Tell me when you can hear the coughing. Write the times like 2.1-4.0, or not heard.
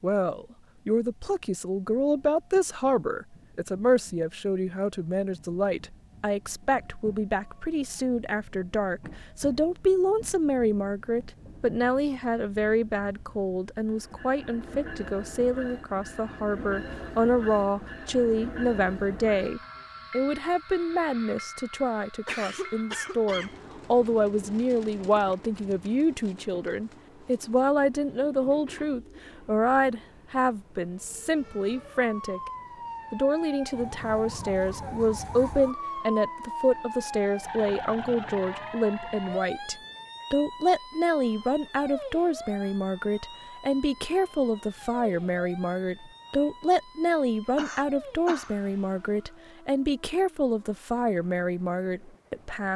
22.2-23.6, 47.5-48.5.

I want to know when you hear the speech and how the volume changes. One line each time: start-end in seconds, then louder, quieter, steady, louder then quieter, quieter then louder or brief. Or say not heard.
0.0-32.4 steady
33.1-52.7 steady.